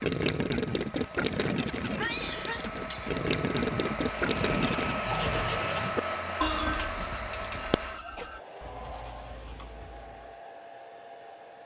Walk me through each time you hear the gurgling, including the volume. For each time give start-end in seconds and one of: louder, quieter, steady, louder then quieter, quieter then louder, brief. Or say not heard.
0.0-5.0 quieter then louder.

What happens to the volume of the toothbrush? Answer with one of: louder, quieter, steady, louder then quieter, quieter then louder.
quieter.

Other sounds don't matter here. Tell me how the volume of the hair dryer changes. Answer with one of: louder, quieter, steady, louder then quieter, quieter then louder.
louder then quieter.